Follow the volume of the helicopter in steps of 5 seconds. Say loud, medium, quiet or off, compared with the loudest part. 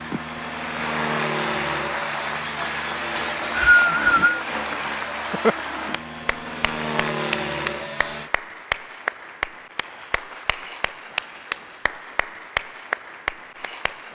loud, loud, off.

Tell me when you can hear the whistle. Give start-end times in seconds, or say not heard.
3.1-4.5.